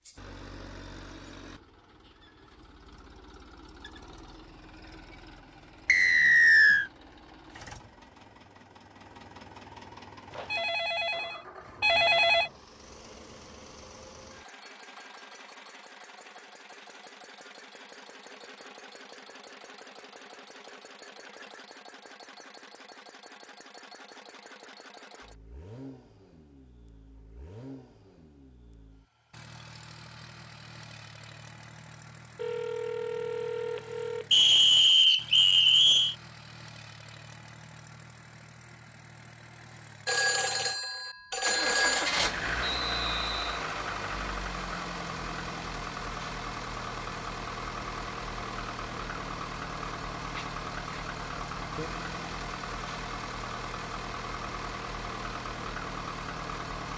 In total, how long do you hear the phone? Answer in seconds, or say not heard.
6 s.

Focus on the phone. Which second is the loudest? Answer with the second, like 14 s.
12 s.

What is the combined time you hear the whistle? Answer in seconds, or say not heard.
4 s.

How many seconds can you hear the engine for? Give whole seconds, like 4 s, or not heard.
57 s.